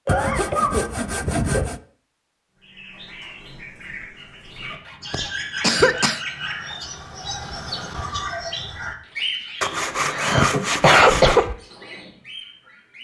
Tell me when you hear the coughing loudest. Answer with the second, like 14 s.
11 s.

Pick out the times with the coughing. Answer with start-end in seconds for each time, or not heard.
0.1-1.6, 5.1-6.2, 9.7-11.6.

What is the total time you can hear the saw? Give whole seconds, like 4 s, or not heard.
6 s.